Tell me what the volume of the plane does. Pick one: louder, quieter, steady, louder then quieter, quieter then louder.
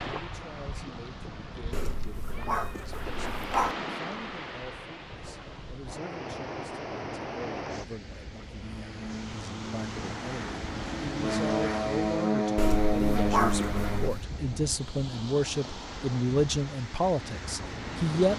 louder.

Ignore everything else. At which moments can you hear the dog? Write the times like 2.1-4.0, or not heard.
1.7-3.8, 12.6-14.1.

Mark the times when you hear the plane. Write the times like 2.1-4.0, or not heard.
8.6-14.1.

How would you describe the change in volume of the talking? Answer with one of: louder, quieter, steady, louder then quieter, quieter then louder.
louder.